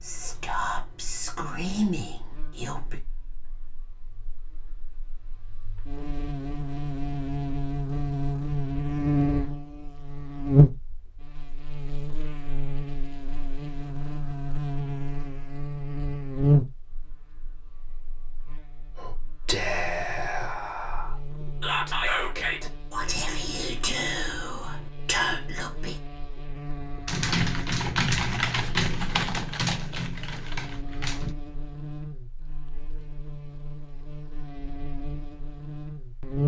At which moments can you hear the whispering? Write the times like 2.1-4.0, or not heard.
0.0-3.0, 18.9-25.9.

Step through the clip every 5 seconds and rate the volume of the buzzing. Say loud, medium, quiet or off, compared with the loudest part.
quiet, loud, loud, loud, quiet, quiet, quiet, loud.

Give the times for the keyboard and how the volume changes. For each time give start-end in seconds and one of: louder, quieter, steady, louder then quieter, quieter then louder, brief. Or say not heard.
27.1-31.4 quieter.